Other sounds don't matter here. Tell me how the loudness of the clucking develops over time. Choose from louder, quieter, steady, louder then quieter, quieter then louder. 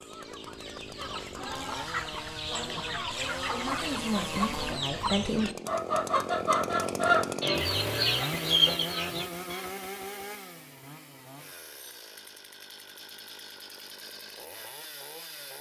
louder.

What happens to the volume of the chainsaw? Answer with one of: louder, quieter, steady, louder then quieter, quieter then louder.
louder then quieter.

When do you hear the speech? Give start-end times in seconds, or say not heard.
2.4-5.5.